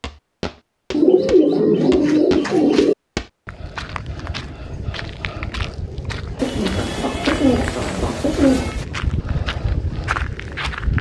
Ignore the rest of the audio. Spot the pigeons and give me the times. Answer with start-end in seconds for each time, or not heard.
0.9-3.0, 6.3-8.8.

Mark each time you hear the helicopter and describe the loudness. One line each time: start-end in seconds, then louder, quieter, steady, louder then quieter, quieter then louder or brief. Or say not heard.
not heard.